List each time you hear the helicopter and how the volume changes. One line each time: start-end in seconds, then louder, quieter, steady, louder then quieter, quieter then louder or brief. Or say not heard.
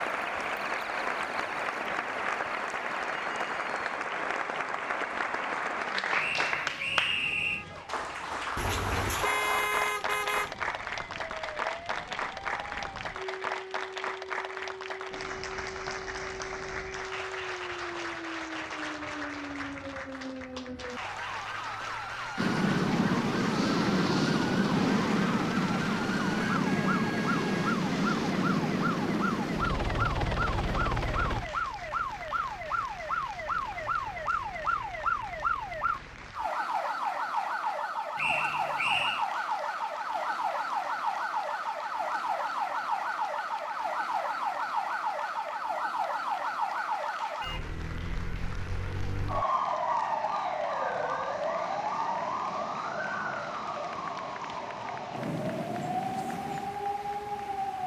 22.4-36.4 quieter.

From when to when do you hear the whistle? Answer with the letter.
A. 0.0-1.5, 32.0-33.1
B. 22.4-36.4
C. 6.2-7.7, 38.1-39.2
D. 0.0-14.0
C.